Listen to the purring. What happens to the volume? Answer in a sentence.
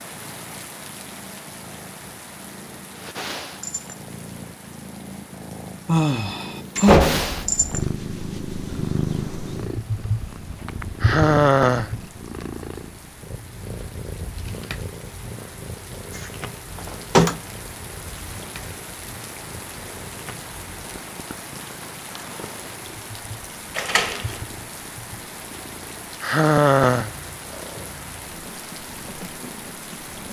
The loudness of the purring goes up, then down.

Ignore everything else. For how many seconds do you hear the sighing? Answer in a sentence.
The sighing can be heard for 3 seconds in total.